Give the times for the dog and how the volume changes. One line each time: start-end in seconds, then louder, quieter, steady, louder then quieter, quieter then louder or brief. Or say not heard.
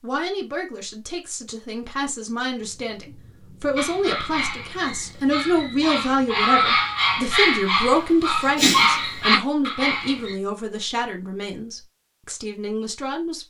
3.8-10.3 louder.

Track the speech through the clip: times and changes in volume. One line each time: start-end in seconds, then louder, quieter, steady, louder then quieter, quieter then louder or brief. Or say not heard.
0.0-13.4 louder then quieter.